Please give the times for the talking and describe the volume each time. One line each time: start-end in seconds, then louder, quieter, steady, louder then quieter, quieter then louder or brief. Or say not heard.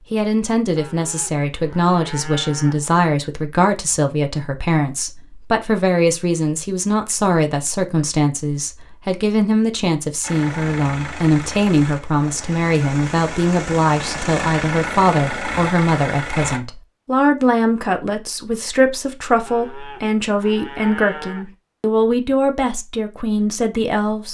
0.1-24.2 steady.